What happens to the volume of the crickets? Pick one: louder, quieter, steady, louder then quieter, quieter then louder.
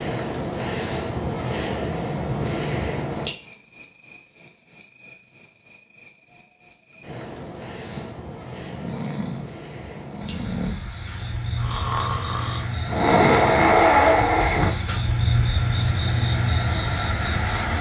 quieter then louder.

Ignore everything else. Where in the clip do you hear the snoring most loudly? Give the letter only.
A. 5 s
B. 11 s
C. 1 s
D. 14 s
D.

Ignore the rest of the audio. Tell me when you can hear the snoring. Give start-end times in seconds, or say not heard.
7.8-14.9.